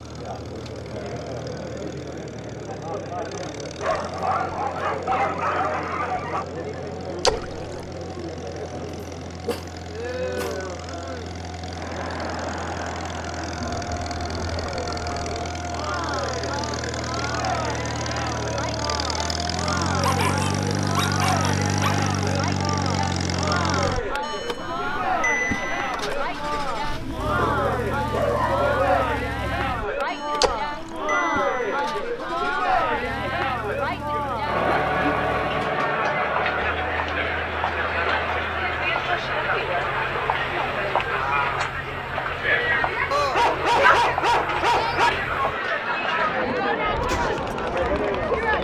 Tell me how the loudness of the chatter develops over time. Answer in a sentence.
The loudness of the chatter goes up.